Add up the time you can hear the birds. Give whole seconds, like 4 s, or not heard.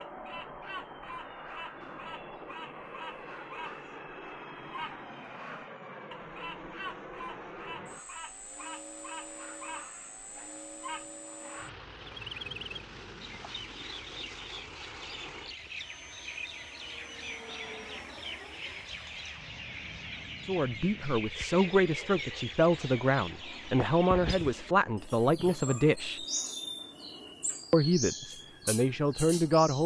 30 s.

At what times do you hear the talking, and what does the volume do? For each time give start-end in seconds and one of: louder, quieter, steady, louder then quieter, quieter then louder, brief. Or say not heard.
20.4-26.2 steady
27.7-29.8 brief.